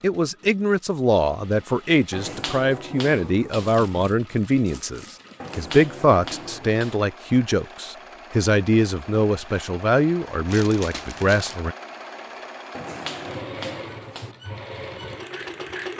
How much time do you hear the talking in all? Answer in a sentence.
The talking can be heard for 12 seconds in total.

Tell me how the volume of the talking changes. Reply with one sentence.
The loudness of the talking stays about the same.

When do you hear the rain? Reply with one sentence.
The rain can't be heard in this clip.